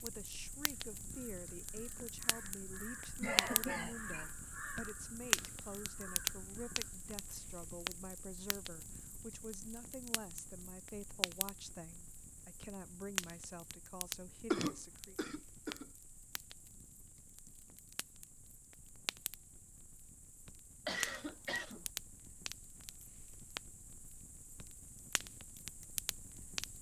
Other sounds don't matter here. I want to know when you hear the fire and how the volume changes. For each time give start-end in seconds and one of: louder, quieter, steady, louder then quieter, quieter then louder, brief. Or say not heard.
0.0-26.7 quieter.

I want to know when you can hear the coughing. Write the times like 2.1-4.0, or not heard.
3.2-4.3, 14.5-15.8, 20.9-21.9.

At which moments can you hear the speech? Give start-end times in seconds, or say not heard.
0.0-15.2.